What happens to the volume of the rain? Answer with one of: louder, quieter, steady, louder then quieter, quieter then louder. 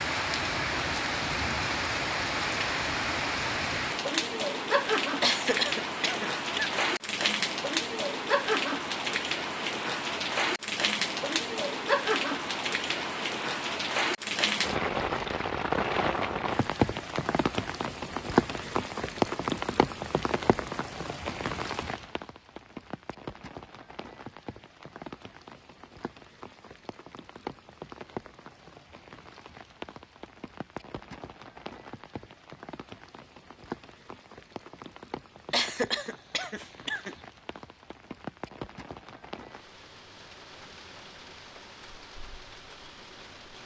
quieter.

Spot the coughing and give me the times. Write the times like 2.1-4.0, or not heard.
5.2-6.8, 35.5-37.1.